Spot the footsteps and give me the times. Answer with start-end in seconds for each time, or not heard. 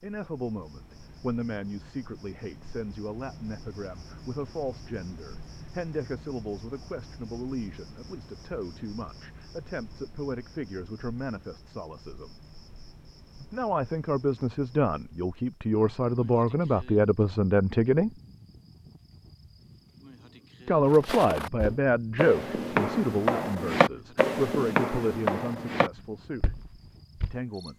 20.9-27.4.